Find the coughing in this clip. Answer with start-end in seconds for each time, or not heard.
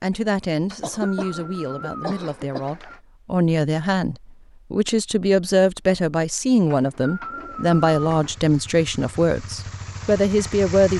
0.8-2.7.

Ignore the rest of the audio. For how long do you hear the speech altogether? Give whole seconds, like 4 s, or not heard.
11 s.